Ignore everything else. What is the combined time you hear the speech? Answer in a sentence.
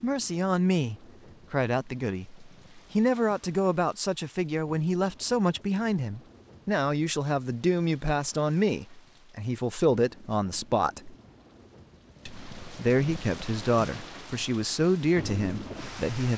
The speech can be heard for 15 seconds in total.